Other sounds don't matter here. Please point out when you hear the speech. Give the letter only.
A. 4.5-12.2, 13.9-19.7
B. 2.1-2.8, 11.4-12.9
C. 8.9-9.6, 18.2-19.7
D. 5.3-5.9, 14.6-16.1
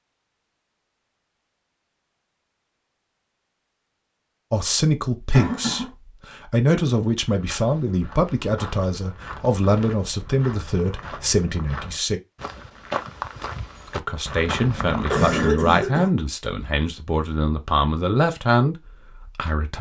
A.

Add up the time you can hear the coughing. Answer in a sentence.
The coughing can be heard for 2 seconds in total.